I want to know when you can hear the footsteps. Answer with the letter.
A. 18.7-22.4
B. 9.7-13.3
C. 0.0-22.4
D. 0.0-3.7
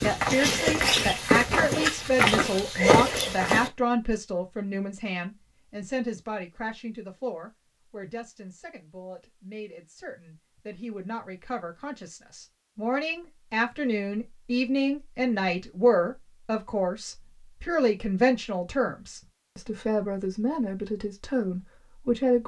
D.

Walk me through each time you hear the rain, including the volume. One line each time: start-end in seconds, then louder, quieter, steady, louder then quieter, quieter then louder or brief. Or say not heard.
not heard.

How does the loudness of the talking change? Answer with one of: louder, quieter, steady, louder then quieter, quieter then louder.
quieter then louder.